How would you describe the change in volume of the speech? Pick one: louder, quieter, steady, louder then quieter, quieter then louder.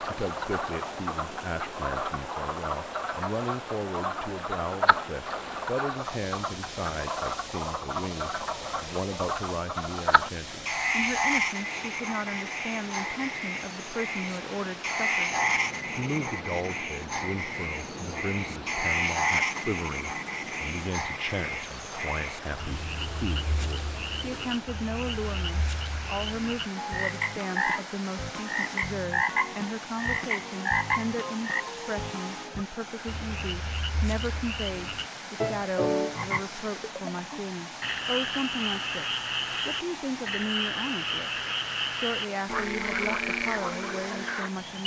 steady.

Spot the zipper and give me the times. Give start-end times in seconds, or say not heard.
not heard.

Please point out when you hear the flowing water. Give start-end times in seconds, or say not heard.
0.0-44.8.